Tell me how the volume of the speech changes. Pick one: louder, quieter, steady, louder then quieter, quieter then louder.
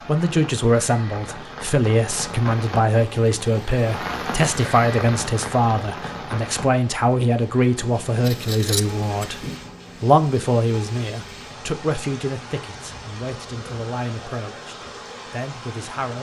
quieter.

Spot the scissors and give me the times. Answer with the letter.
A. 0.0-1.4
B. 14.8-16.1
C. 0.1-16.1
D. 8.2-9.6
D.